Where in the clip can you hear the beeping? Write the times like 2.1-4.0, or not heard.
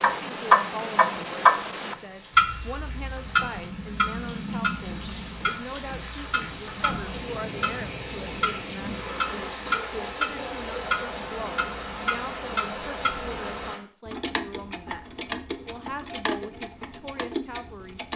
not heard.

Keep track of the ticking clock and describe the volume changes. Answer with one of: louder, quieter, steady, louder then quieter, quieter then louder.
quieter.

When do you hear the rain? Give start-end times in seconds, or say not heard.
0.0-13.8.